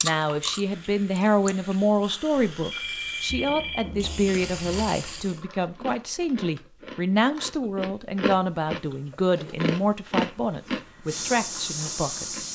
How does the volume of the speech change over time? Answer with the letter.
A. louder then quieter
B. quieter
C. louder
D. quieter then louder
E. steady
E.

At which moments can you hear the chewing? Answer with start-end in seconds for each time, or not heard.
0.0-1.8, 4.2-12.4.